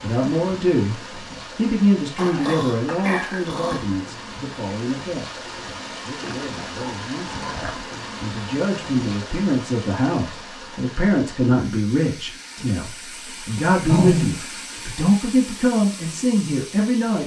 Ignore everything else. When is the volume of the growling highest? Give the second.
14 s.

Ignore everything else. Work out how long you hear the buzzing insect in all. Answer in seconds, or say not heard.
not heard.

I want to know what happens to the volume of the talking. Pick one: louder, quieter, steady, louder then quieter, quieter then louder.
quieter then louder.